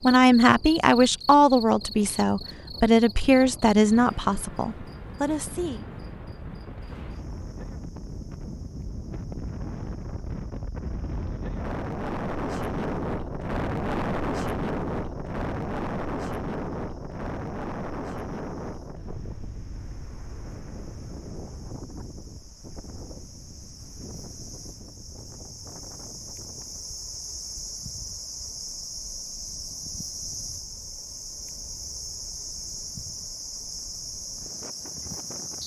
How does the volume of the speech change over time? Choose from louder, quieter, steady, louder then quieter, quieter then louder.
quieter.